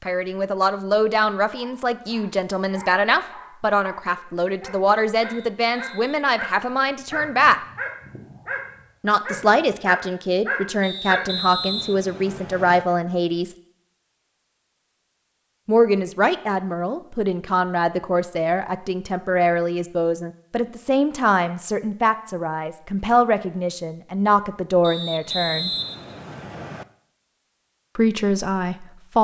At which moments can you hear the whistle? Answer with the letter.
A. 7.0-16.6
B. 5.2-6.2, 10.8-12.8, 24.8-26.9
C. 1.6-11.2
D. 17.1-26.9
B.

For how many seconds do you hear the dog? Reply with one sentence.
The dog can be heard for 10 seconds in total.